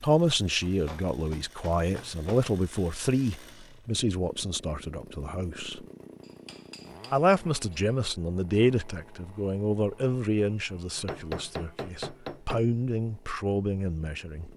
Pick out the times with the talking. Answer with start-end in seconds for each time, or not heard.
0.0-5.8, 7.1-14.5.